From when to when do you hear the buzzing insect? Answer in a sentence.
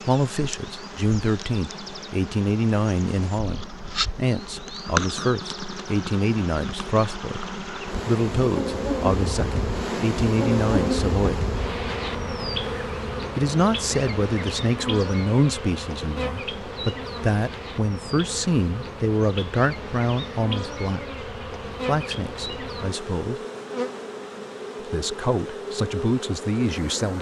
The buzzing insect can be heard from 0.0 to 27.1 s.